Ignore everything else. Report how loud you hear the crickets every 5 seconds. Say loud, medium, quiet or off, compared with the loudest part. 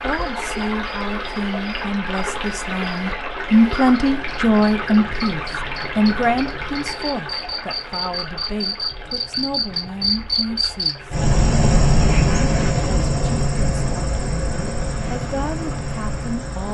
quiet, medium, loud, medium.